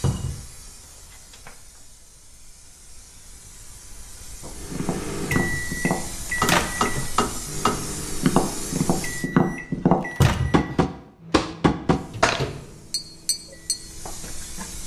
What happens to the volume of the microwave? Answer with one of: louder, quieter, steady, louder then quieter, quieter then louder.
quieter.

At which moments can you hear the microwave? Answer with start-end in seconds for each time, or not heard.
4.5-14.8.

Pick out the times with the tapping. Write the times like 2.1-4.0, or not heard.
4.4-13.8.